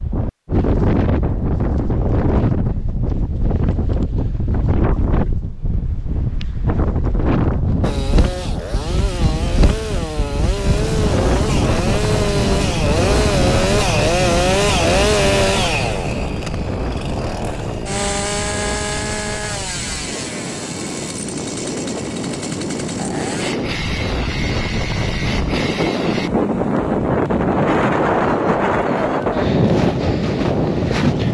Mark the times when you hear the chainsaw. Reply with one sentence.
You can hear the chainsaw from 7.8 to 26.3 s.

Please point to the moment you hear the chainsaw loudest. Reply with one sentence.
The volume of the chainsaw peaks at 15 seconds.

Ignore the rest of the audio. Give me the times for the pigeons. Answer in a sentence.
You can't hear the pigeons here.